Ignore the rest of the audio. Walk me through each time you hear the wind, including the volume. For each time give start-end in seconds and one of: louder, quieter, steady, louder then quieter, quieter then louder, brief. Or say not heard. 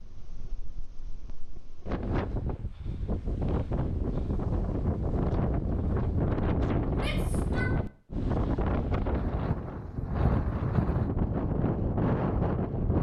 0.0-12.9 louder.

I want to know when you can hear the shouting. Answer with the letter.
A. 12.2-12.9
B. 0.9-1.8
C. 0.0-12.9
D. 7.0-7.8
D.